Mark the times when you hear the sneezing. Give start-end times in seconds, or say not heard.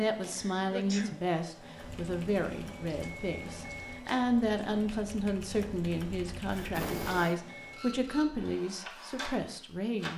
0.3-1.2, 6.5-7.4.